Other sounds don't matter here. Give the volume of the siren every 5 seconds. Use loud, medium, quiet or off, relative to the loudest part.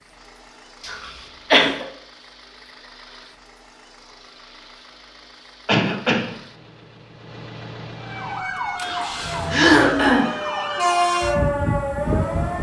off, medium, loud.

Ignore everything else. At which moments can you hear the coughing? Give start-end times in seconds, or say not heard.
0.8-1.9, 5.7-6.3, 9.5-10.3.